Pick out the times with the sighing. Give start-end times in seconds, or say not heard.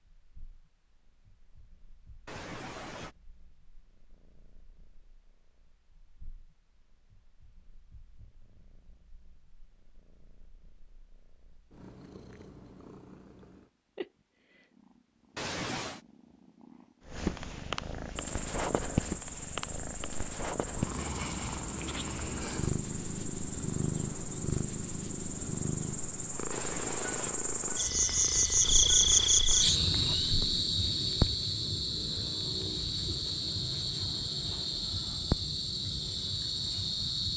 2.2-3.1, 15.3-16.0, 26.5-27.4.